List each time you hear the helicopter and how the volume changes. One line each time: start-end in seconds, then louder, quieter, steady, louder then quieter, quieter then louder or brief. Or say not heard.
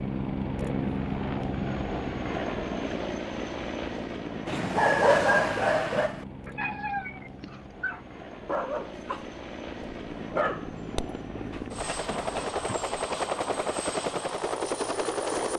0.0-15.5 quieter then louder.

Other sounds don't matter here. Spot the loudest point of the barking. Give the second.
5 s.